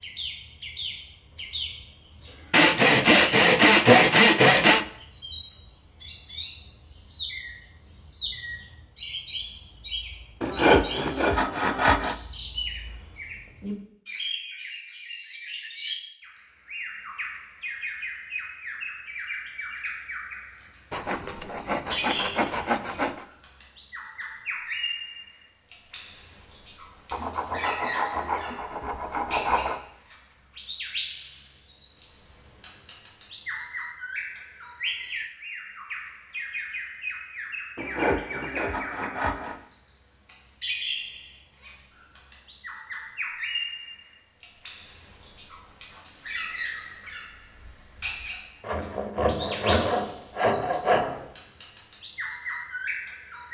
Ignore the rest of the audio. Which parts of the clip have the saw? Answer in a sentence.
You can hear the saw from 2.5 to 4.8 s, from 10.4 to 12.2 s, from 20.9 to 23.2 s, from 27.1 to 29.8 s, from 37.8 to 39.6 s and from 48.6 to 51.3 s.